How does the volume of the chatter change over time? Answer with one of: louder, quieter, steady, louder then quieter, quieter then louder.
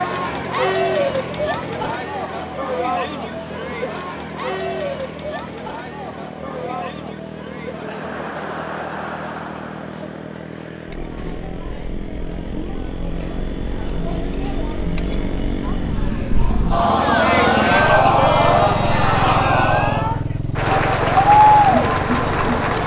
quieter then louder.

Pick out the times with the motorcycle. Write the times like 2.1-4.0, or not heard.
0.0-22.8.